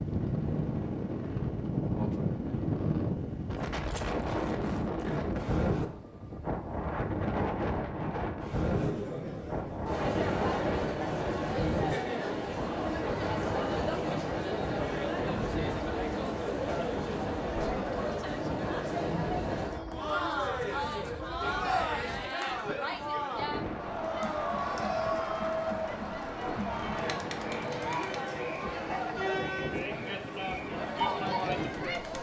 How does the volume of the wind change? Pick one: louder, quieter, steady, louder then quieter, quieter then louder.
quieter.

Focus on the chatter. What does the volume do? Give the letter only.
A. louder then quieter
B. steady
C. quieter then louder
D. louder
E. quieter
B.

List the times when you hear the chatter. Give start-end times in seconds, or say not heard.
8.6-32.1.